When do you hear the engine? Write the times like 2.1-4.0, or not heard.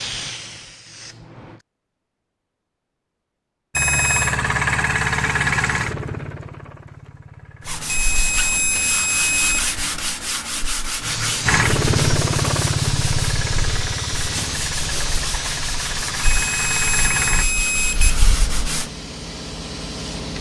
3.8-9.6, 11.4-17.4.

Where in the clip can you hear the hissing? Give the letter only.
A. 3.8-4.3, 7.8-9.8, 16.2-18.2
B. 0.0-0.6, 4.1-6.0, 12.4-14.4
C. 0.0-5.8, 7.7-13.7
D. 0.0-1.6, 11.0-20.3
D.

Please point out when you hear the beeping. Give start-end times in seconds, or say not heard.
3.8-4.3, 7.8-9.8, 16.2-18.2.